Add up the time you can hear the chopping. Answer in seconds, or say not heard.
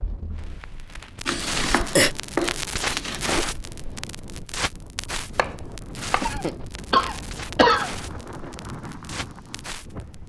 4 s.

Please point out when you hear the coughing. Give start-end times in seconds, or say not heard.
1.2-2.1, 6.2-7.9.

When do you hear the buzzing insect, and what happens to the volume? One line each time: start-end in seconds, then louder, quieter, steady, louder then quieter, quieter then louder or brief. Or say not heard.
not heard.